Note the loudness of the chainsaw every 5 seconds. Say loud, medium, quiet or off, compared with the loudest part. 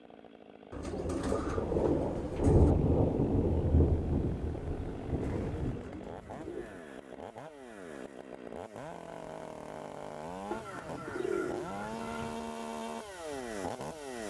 medium, medium, loud.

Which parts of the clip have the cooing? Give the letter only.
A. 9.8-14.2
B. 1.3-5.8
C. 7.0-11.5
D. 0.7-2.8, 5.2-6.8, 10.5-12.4
D.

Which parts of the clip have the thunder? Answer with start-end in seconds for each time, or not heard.
1.3-5.8.